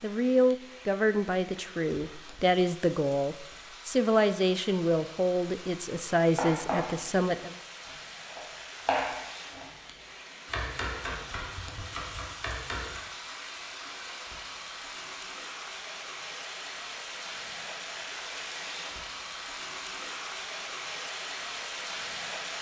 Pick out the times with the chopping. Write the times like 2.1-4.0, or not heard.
6.3-9.7, 10.4-13.0.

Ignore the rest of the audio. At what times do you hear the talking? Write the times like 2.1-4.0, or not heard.
0.0-7.5.